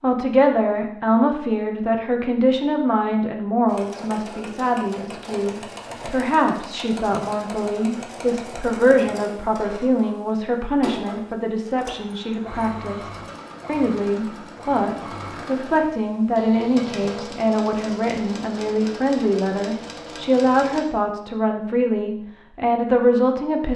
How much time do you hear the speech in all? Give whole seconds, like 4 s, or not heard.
24 s.